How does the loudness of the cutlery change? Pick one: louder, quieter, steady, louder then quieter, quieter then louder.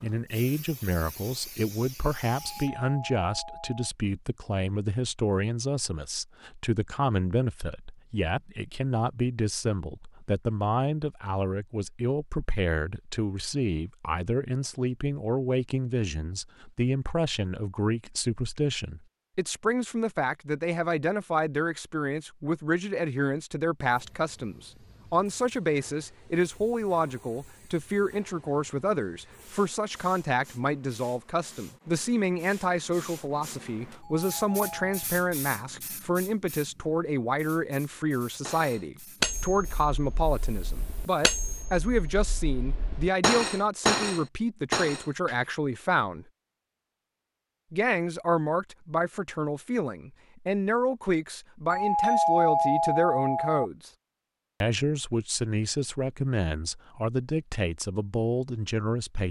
quieter then louder.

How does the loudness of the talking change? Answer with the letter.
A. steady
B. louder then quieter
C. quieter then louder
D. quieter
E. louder
A.